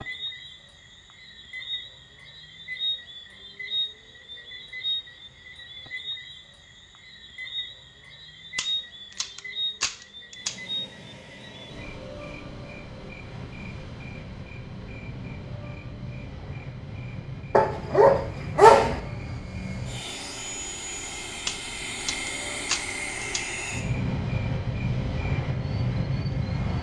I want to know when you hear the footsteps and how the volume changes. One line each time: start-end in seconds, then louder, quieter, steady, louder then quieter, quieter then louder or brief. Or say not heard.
not heard.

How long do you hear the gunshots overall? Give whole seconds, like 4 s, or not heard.
4 s.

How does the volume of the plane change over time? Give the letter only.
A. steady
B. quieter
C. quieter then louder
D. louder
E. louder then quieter
D.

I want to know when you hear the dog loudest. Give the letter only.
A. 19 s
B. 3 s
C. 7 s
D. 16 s
A.